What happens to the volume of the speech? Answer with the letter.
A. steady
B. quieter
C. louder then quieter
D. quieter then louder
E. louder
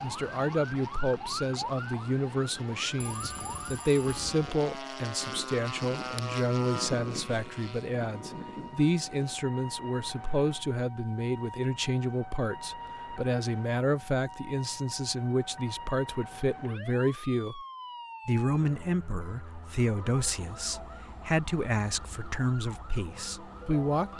A.